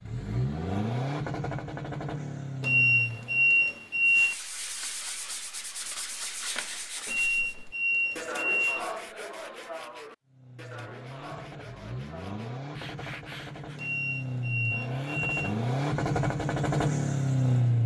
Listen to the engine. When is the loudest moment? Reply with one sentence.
The loudest moment of the engine is at 17 seconds.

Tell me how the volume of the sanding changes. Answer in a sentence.
The loudness of the sanding goes down.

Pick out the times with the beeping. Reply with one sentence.
You can hear the beeping from 2.6 to 4.3 s, from 7.0 to 8.9 s and from 13.8 to 15.6 s.